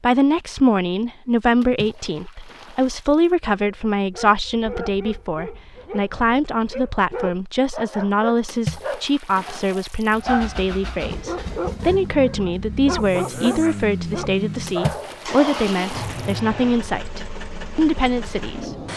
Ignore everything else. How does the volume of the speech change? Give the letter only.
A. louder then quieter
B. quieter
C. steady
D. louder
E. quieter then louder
C.